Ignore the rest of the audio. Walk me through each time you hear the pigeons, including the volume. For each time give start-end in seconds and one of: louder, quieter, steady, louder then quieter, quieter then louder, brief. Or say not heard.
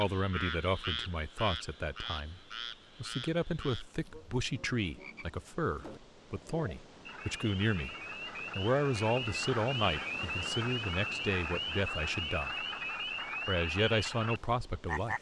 not heard.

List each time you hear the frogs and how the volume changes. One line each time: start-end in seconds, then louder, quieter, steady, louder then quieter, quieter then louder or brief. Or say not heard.
0.0-15.1 quieter then louder.